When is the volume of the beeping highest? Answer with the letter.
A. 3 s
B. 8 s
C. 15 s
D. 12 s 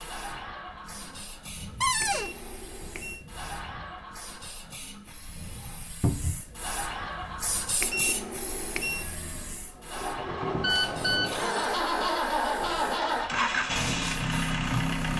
B.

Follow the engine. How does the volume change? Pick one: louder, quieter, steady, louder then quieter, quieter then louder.
louder.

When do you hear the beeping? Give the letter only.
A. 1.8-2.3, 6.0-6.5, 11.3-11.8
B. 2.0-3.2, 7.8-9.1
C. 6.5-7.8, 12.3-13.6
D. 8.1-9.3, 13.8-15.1
B.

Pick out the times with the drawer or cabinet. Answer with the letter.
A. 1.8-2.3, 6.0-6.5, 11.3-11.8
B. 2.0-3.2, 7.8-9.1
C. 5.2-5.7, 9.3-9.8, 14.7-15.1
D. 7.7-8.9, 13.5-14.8
A.